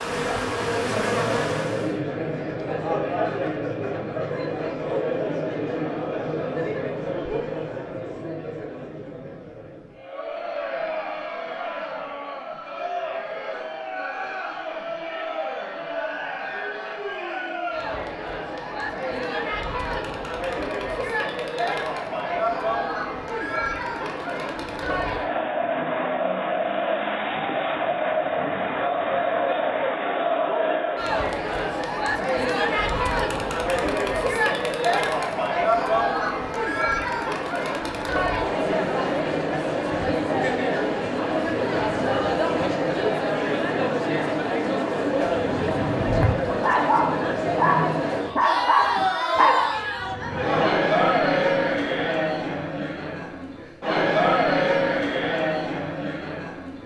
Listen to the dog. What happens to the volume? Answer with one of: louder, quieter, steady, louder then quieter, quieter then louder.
steady.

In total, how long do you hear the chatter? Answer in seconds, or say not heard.
57 s.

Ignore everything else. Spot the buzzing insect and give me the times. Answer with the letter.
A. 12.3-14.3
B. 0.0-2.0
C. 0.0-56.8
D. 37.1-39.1
B.